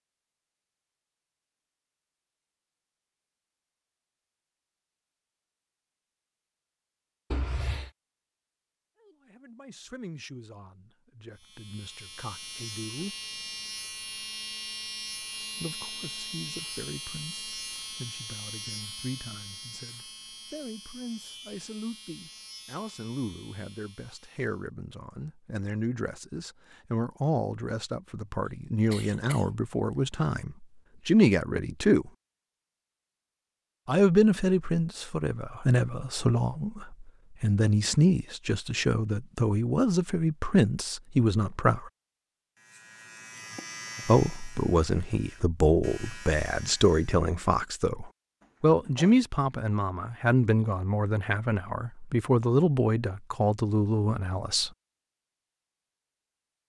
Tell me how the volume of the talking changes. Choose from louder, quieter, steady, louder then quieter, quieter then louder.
louder.